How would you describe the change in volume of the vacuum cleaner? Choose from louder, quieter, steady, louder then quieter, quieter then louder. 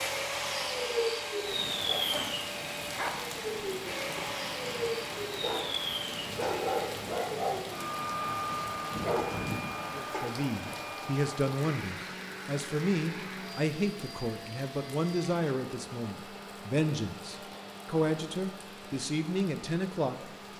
quieter.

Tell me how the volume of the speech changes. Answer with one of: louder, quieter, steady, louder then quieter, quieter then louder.
steady.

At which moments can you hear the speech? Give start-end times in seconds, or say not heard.
9.9-20.4.